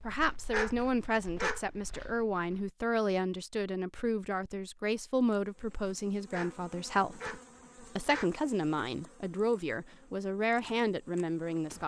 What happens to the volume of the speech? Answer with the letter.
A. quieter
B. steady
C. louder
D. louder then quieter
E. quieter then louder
B.